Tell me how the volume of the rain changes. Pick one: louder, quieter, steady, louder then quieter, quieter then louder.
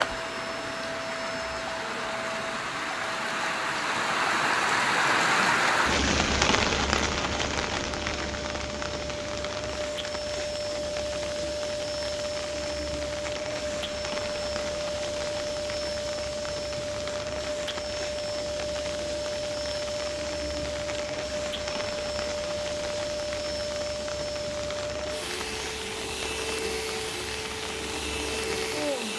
quieter.